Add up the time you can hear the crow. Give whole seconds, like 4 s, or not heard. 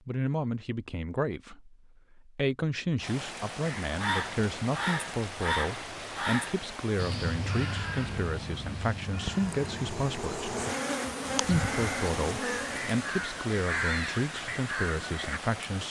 12 s.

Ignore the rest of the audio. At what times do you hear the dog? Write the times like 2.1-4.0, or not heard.
not heard.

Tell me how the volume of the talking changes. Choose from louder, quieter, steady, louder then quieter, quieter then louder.
steady.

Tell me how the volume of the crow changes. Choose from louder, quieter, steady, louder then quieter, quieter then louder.
quieter then louder.